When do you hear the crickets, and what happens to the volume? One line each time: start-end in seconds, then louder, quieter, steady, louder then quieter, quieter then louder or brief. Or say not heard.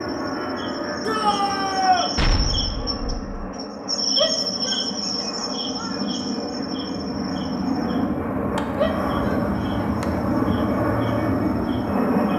0.0-12.3 louder then quieter.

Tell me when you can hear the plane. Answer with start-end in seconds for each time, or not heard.
0.0-12.3.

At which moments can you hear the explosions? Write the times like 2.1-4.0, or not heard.
2.1-3.5.